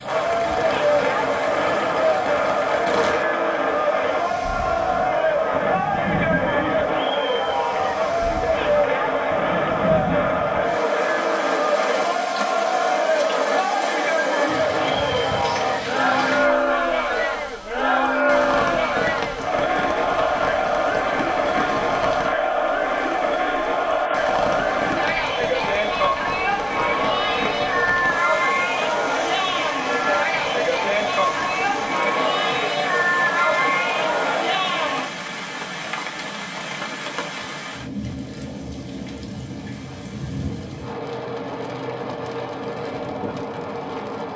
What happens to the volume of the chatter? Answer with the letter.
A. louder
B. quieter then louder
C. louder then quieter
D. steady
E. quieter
D.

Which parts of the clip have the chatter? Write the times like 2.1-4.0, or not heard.
0.0-35.1.